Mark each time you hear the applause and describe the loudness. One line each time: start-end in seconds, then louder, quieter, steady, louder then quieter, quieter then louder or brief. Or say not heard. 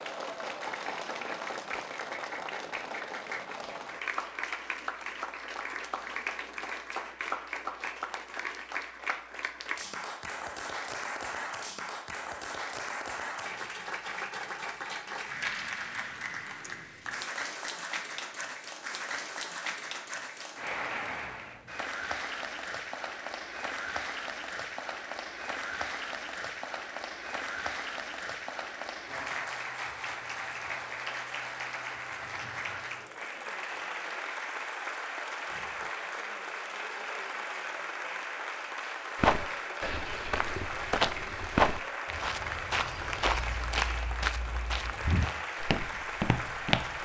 0.0-46.9 steady.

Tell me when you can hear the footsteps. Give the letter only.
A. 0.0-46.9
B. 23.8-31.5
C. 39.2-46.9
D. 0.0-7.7
C.